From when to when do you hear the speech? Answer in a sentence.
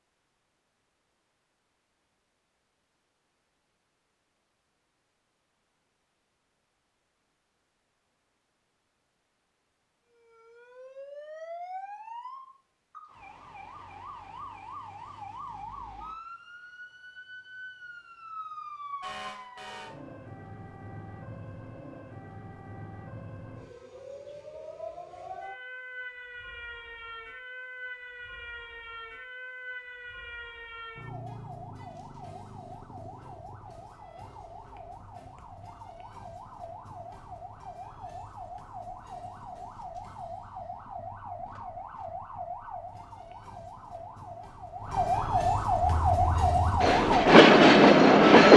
The speech can't be heard in this clip.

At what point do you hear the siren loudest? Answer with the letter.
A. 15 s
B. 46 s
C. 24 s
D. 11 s
B.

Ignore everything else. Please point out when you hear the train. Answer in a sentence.
You can hear the train from 45.8 to 48.5 s.